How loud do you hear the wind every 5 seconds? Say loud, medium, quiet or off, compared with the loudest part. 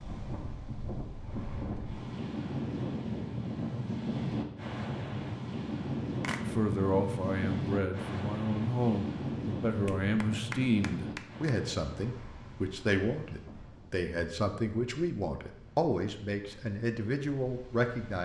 loud, loud, medium, quiet.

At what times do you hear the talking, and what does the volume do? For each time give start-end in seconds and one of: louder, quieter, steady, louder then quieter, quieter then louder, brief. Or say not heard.
6.5-18.2 steady.